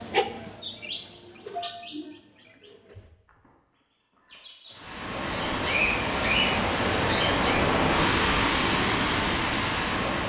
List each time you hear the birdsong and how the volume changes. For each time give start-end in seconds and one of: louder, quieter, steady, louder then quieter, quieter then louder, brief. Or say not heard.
0.0-7.7 quieter then louder.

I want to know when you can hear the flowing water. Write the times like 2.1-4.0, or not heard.
4.7-10.2.